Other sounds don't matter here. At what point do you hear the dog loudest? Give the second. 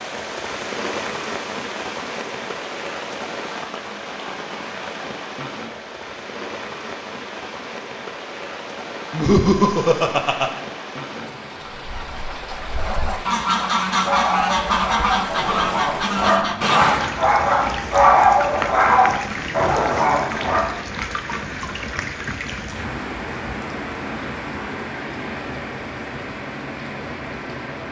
18 s.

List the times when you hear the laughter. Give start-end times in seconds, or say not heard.
9.1-10.6.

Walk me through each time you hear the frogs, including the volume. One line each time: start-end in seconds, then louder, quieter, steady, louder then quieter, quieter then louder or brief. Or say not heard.
not heard.